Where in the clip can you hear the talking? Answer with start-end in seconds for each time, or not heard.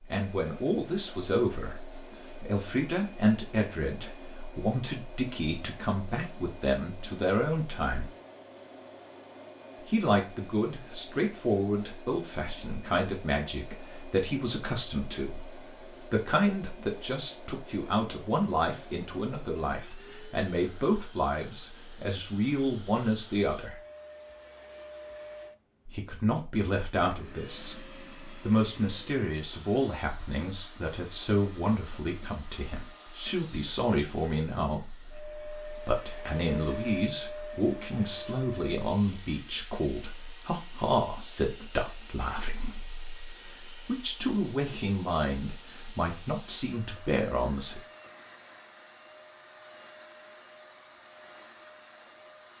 0.0-8.1, 9.8-23.8, 25.9-47.8.